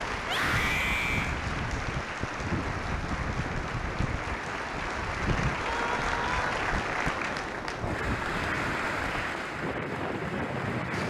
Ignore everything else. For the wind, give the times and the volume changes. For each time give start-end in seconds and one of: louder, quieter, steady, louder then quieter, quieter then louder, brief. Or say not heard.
0.0-11.0 steady.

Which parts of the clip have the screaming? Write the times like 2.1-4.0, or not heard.
0.2-1.4, 5.7-6.5.